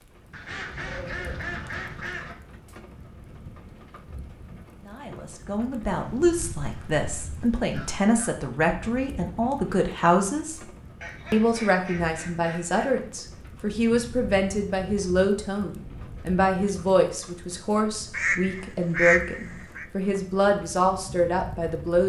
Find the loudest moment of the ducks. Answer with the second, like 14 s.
19 s.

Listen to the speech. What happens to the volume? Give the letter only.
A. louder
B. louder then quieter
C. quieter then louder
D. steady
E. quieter
D.